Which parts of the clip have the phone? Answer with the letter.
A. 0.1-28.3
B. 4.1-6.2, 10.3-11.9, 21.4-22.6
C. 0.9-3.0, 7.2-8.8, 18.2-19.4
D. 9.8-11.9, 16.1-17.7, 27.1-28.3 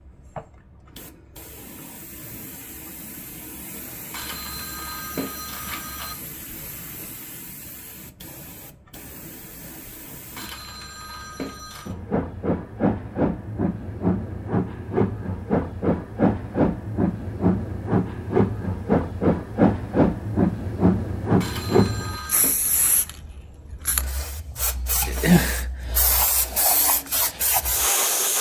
B.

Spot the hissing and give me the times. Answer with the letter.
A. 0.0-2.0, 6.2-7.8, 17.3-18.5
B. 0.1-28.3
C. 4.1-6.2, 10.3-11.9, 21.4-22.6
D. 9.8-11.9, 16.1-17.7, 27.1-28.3
B.